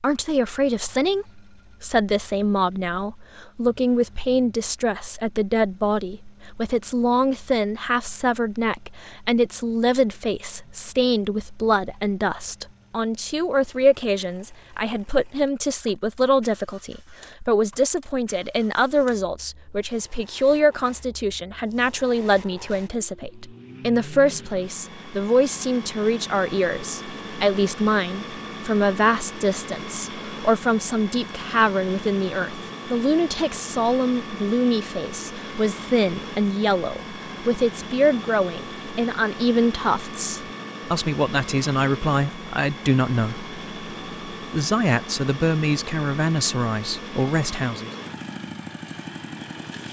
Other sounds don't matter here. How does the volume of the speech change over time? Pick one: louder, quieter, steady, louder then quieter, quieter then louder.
steady.